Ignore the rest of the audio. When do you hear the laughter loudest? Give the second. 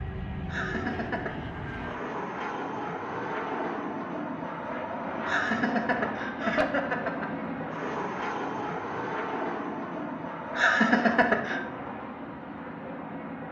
11 s.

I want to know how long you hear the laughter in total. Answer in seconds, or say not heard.
4 s.